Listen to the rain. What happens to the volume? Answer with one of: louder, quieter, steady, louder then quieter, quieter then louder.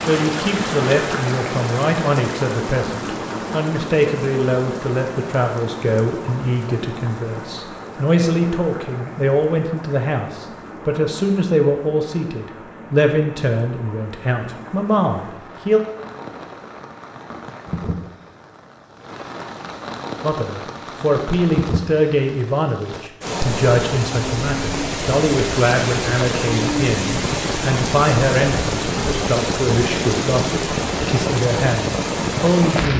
quieter then louder.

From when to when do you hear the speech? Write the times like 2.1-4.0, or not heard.
0.0-15.8, 20.2-32.9.